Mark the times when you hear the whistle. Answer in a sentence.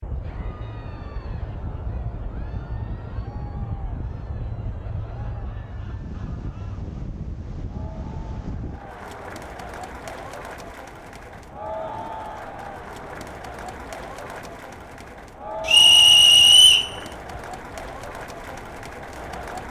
The whistle can be heard from 15.7 to 16.9 s.